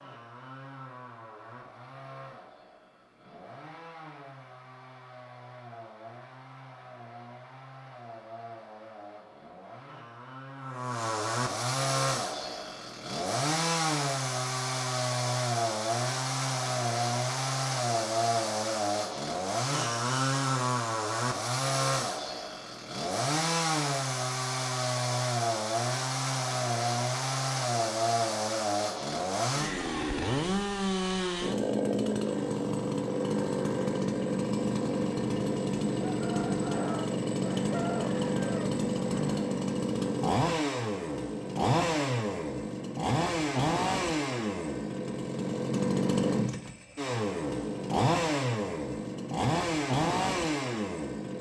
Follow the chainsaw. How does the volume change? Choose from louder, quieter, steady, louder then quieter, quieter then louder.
louder.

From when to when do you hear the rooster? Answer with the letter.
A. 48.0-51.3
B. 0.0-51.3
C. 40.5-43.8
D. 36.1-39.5
D.